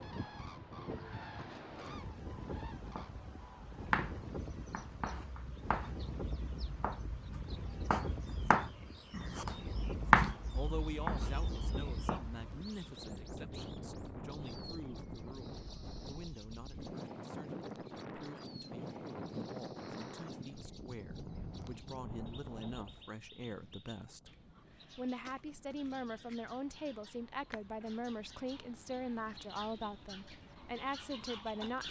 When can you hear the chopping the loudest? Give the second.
10 s.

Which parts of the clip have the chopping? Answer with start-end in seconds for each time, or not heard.
2.8-12.4.